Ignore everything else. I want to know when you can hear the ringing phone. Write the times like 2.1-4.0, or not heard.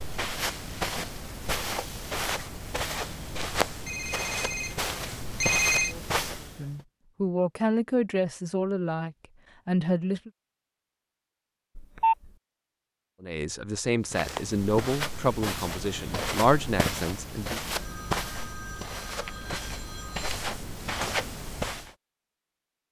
3.9-6.0, 11.8-12.3, 17.6-20.4.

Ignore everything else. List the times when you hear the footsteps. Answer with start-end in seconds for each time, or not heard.
0.0-6.8, 14.1-21.9.